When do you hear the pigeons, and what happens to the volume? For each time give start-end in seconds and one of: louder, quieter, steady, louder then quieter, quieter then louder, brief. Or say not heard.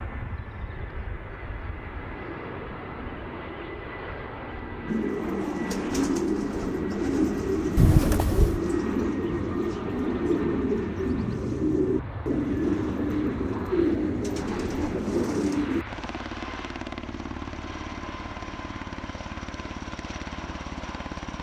4.8-15.8 steady.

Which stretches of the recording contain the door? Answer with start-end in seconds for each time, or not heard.
7.8-8.6.